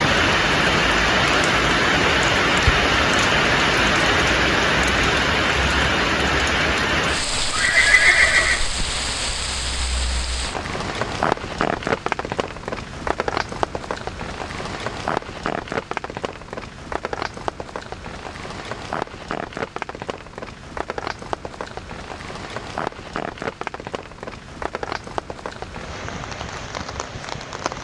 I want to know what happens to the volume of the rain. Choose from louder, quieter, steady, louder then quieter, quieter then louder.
quieter.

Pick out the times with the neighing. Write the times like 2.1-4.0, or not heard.
7.5-8.7.